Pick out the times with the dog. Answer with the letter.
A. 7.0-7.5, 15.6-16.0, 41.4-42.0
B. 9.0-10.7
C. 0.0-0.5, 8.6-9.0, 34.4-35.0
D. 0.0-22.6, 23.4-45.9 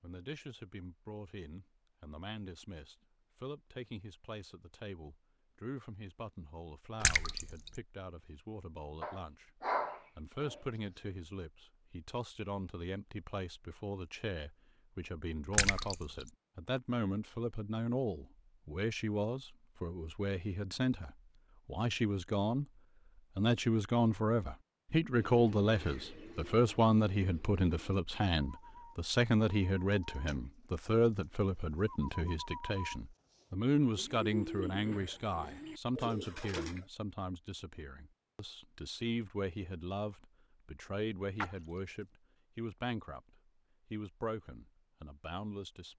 B.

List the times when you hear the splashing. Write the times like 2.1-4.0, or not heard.
7.0-7.5, 15.6-16.0, 41.4-42.0.